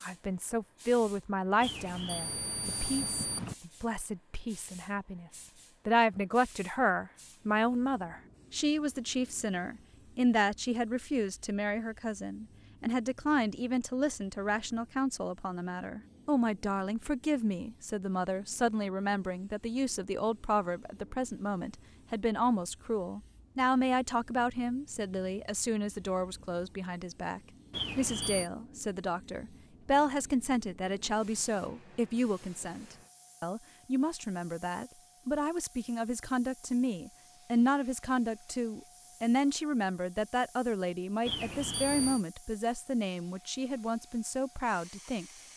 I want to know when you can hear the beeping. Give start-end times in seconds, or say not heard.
1.6-3.5, 27.7-28.5, 41.2-42.2.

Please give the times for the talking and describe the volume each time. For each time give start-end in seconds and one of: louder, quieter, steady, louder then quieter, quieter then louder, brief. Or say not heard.
0.0-45.2 steady.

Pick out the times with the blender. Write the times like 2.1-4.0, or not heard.
not heard.